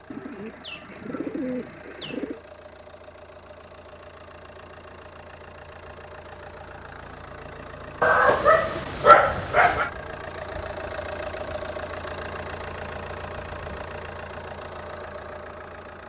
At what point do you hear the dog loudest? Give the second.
9 s.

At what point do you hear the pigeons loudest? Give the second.
1 s.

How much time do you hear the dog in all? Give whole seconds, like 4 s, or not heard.
2 s.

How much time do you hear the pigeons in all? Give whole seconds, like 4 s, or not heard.
2 s.